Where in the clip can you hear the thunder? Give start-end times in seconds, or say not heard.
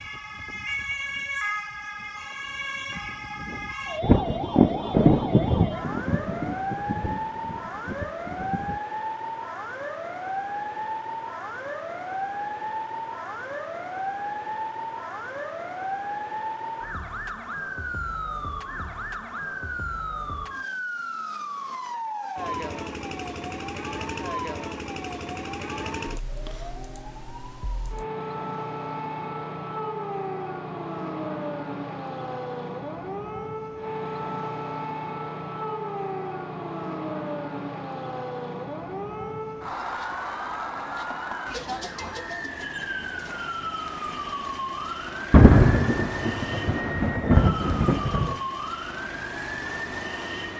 4.0-8.8, 45.3-48.4.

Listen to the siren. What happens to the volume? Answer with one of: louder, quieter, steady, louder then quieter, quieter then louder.
steady.